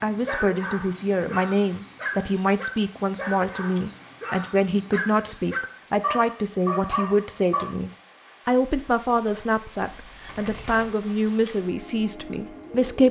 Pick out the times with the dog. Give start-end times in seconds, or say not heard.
0.0-7.8.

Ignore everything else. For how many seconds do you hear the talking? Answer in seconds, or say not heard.
13 s.